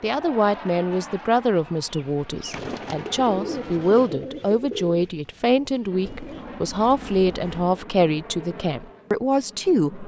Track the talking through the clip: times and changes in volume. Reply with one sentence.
The talking can be heard from 0.0 to 10.0 s, at a steady volume.